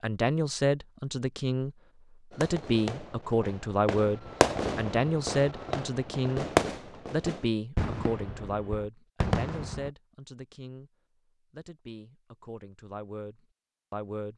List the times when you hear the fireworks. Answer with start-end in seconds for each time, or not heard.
2.3-9.9.